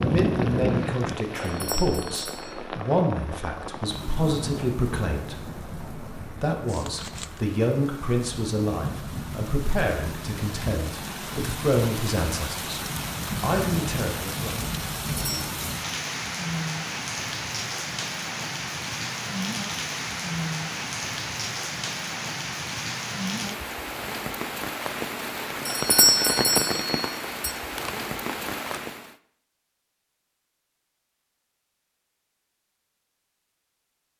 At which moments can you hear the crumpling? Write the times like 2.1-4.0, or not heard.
6.7-7.4, 27.8-28.8.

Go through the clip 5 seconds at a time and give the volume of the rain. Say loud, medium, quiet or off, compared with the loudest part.
loud, medium, loud, loud, loud, loud, off.